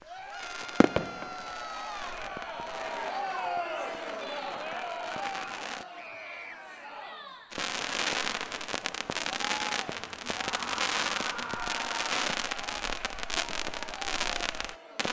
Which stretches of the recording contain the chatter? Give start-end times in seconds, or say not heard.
0.0-15.0.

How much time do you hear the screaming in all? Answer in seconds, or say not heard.
4 s.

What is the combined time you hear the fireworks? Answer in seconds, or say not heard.
13 s.